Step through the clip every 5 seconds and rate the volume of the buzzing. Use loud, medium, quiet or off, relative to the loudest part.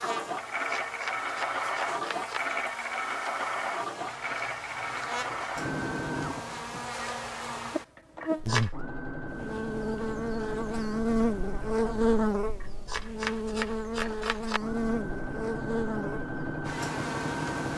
quiet, medium, loud, medium.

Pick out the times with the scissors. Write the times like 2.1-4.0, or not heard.
0.7-2.4, 8.2-8.7, 12.6-14.6.